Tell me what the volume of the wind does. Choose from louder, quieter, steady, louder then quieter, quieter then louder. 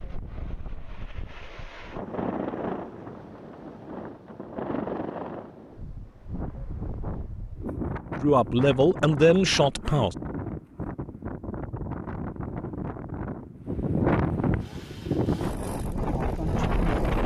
louder.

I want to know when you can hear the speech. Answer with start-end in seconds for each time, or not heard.
8.2-10.2.